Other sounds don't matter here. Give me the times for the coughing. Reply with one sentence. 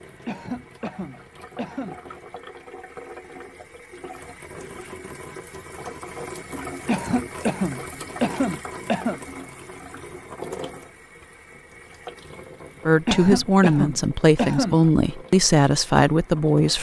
You can hear the coughing from 0.2 to 1.9 s, from 6.8 to 9.2 s and from 13.1 to 14.8 s.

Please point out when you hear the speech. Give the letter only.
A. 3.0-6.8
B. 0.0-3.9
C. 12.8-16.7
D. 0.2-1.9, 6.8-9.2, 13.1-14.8
C.